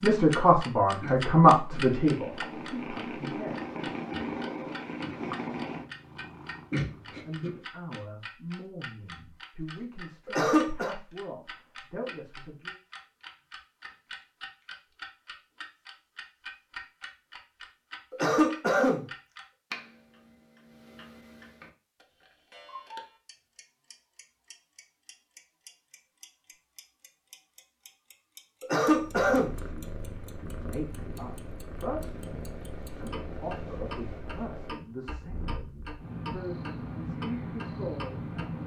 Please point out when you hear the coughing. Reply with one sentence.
The coughing can be heard from 10.2 to 10.9 s, from 18.1 to 19.1 s and from 28.6 to 29.6 s.